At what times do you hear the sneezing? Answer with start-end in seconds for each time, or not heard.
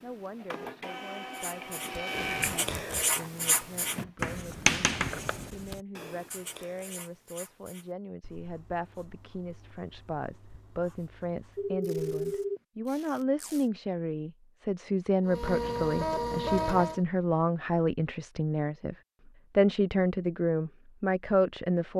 not heard.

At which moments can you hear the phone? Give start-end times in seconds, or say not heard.
11.6-12.6.